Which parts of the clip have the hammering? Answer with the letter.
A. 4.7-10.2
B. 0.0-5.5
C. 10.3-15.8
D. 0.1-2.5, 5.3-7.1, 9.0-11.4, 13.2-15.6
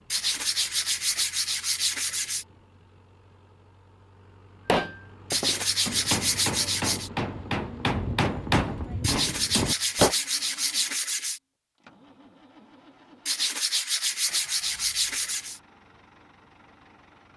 A.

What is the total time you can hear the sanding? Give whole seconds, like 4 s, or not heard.
9 s.